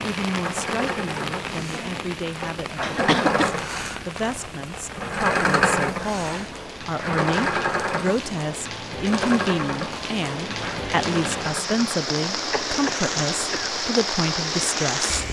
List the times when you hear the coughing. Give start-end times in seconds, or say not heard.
2.8-3.6, 12.5-13.7.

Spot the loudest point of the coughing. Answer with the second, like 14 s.
3 s.